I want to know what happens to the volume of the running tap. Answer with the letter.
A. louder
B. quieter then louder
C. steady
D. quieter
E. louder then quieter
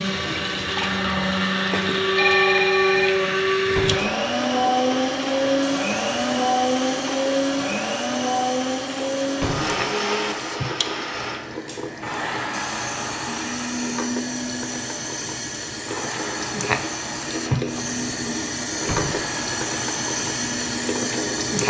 A.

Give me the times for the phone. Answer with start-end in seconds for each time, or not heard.
1.7-3.5.